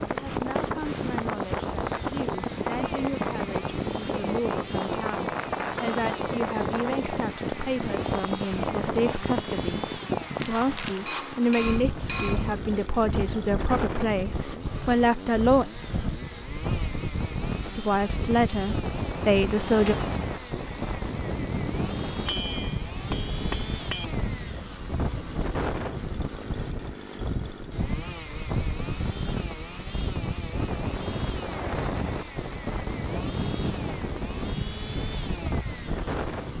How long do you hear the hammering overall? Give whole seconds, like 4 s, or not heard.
3 s.